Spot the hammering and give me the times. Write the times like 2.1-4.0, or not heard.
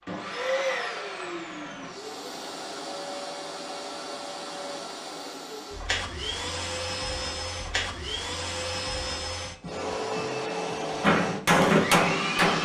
11.0-12.6.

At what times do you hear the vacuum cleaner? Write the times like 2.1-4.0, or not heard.
0.0-12.6.